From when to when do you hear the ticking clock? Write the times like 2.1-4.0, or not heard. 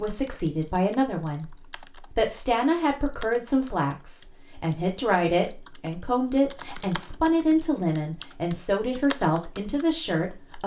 not heard.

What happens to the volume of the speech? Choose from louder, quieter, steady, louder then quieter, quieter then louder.
steady.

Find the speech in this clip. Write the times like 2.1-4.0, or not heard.
0.0-10.6.